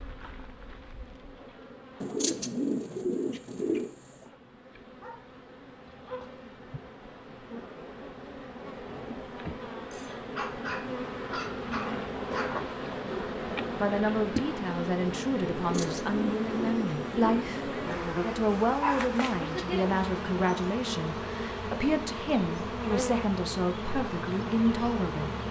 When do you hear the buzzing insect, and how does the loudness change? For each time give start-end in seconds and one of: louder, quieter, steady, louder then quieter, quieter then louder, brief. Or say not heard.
0.0-25.4 louder.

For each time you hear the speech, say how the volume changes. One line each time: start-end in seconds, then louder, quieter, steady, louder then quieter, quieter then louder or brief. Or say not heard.
13.8-25.3 steady.